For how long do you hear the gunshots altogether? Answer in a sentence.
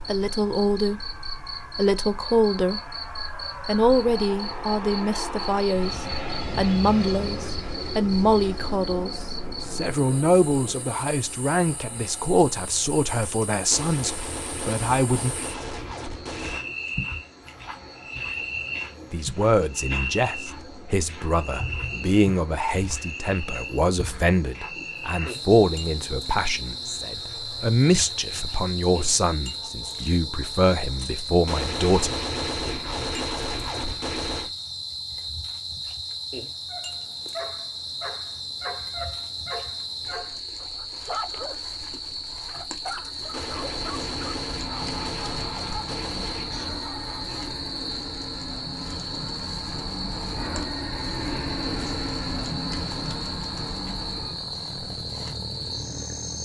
The gunshots can be heard for 11 seconds in total.